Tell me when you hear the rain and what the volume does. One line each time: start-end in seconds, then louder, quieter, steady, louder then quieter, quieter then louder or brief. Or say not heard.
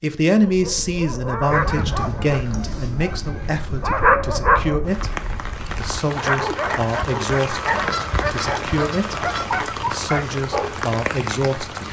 4.8-11.8 steady.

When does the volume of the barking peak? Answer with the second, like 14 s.
4 s.